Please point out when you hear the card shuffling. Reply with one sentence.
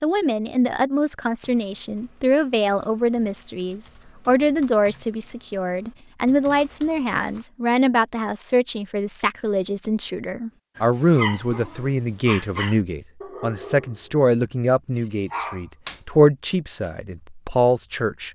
You can't hear the card shuffling here.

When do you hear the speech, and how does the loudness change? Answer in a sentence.
You can hear the speech from 0.0 to 18.3 s, at a steady volume.